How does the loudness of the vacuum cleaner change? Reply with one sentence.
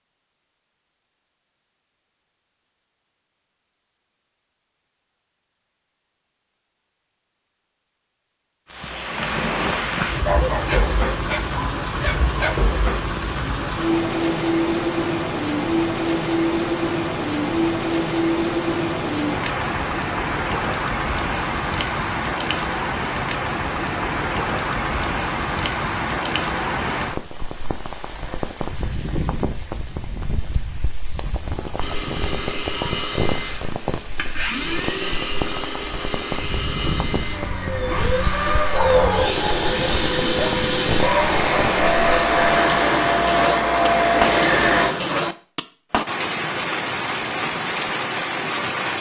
The loudness of the vacuum cleaner goes up.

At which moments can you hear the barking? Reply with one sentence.
The barking can be heard from 10.2 to 12.6 s and from 38.7 to 40.5 s.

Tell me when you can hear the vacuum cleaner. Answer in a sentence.
The vacuum cleaner can be heard from 31.8 to 45.0 s.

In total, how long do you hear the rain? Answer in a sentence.
The rain can be heard for 40 seconds in total.